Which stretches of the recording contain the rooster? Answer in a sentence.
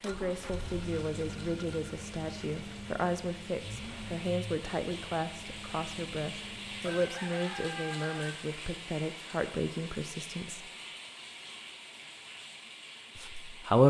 You can hear the rooster from 6.8 to 8.3 s.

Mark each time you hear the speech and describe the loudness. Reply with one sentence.
The speech can be heard from 0.0 to 10.7 s, at a steady volume; and briefly from 13.2 to 13.8 s.